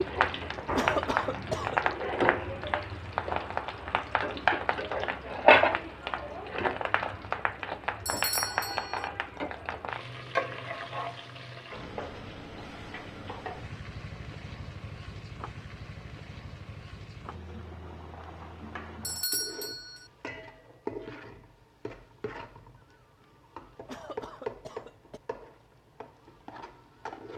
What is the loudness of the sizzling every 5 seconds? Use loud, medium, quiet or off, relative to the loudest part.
loud, loud, medium, quiet, quiet, quiet.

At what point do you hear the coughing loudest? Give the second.
1 s.